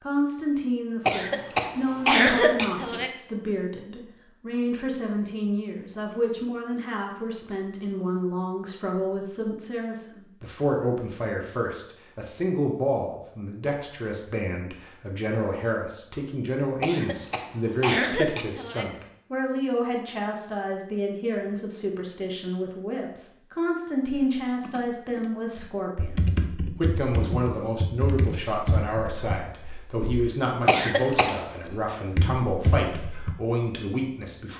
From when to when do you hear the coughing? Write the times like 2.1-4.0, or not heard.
1.1-3.1, 16.8-18.9, 30.6-31.4.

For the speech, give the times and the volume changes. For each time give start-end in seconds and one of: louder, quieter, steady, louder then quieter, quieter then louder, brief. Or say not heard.
0.0-34.5 steady.